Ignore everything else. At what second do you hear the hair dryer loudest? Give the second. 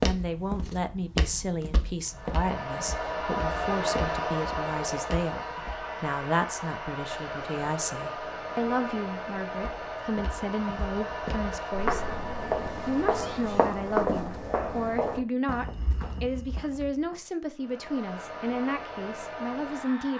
4 s.